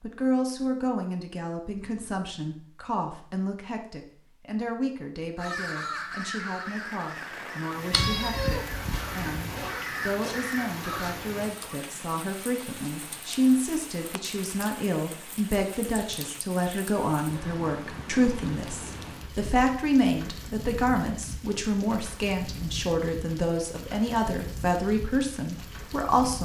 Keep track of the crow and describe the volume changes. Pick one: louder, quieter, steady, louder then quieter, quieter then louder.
quieter then louder.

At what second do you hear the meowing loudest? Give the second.
8 s.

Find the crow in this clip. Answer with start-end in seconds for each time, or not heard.
5.3-11.2.